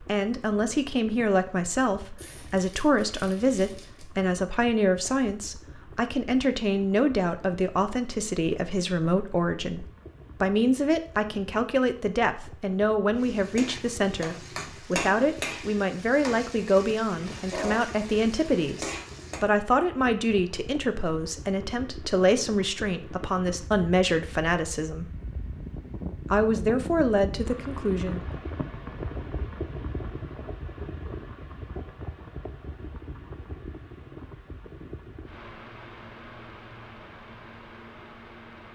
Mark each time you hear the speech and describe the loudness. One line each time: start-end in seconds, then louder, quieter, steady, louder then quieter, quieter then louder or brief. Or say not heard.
0.0-25.1 steady
26.3-28.2 brief.